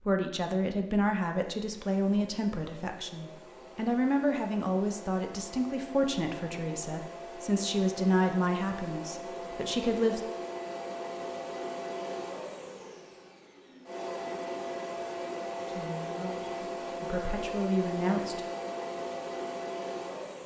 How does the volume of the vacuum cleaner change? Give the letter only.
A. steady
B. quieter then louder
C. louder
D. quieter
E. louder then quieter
C.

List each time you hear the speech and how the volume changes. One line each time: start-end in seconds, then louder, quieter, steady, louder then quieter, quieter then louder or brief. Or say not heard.
0.0-10.2 steady
15.7-18.4 brief.